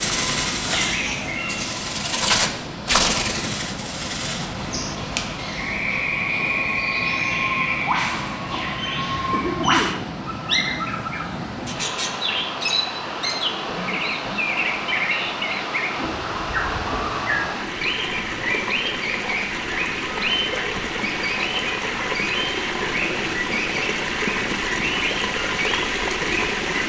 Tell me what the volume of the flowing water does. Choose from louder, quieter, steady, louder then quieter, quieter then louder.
louder.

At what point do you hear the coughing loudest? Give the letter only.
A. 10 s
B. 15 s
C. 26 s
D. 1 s
A.